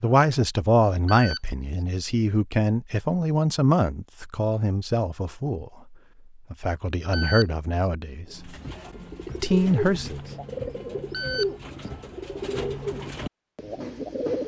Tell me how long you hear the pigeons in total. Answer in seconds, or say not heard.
6 s.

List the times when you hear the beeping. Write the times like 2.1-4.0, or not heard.
1.1-1.9, 7.1-7.9, 11.1-11.9.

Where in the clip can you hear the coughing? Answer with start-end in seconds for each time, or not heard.
not heard.